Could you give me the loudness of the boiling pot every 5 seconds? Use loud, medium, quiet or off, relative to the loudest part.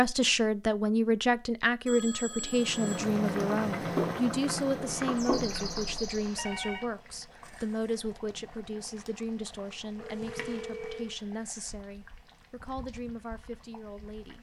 loud, medium, quiet.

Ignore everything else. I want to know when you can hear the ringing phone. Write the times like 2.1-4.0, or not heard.
1.9-3.0, 4.8-6.8, 9.9-11.2.